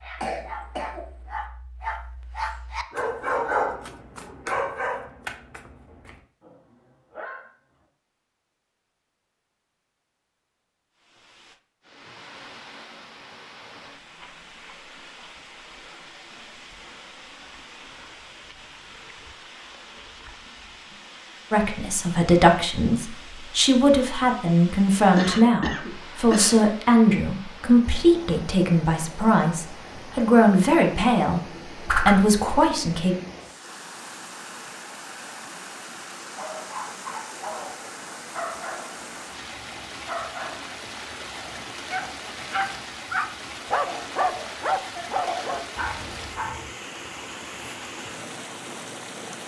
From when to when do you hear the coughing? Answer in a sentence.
The coughing can be heard from 0.2 to 1.1 s, from 25.1 to 26.6 s and from 43.9 to 45.7 s.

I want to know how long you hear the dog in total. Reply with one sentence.
You can hear the dog for 18 seconds altogether.